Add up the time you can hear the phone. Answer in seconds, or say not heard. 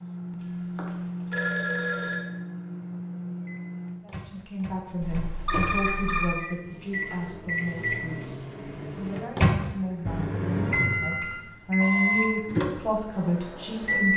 5 s.